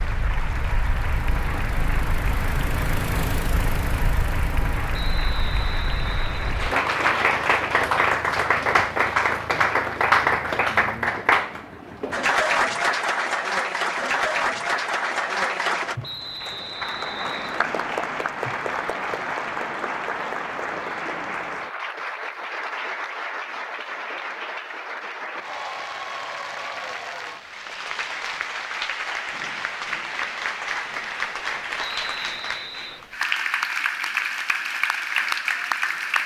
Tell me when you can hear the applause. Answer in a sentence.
You can hear the applause from 0.0 to 36.2 s.